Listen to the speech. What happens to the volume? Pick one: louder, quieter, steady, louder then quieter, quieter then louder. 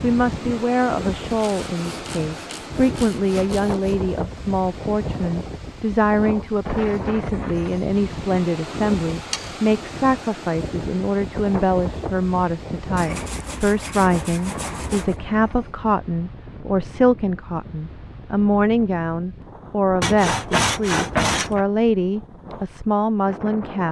steady.